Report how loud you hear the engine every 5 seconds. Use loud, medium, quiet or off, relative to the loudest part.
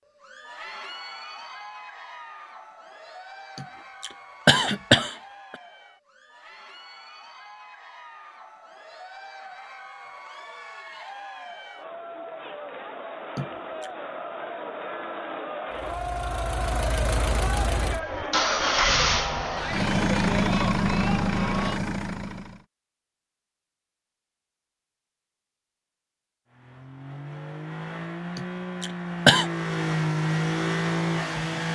off, off, off, loud, loud, medium, loud.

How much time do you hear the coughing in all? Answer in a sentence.
The coughing can be heard for 4 seconds in total.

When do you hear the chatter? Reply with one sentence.
The chatter can be heard from 0.0 to 21.8 s.